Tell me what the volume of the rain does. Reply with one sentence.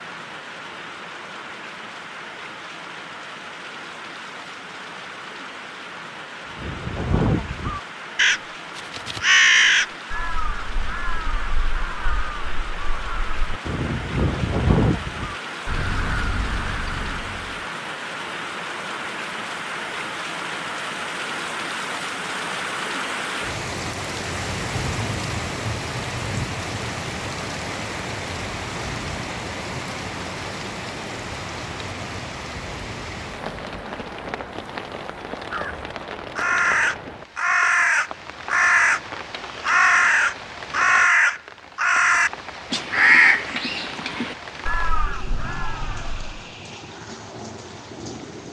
The loudness of the rain goes up, then down.